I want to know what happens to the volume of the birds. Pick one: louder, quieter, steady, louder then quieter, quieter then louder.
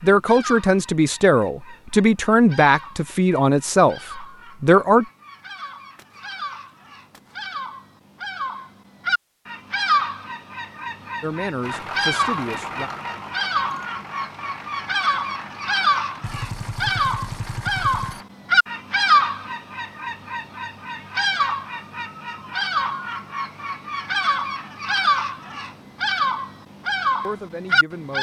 louder.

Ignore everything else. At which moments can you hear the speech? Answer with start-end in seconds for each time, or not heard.
0.0-5.0, 11.2-12.9, 27.2-28.1.